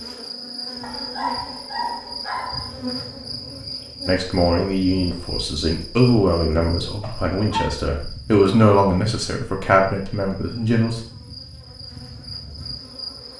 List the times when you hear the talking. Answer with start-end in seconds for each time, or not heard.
4.0-11.0.